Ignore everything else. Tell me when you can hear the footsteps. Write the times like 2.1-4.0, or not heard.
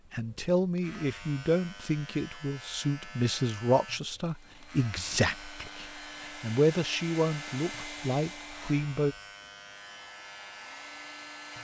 not heard.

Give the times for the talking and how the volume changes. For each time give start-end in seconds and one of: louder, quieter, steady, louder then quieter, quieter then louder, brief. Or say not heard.
0.1-9.2 steady.